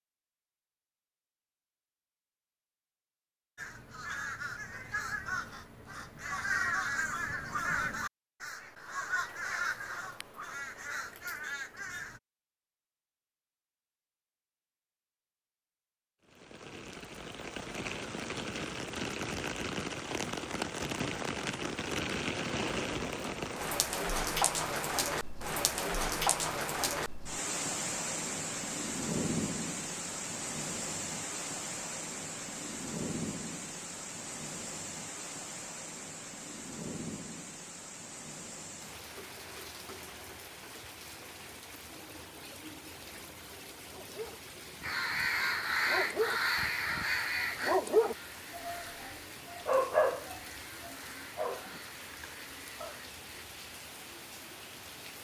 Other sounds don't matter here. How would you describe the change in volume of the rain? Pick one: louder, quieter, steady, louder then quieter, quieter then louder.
quieter.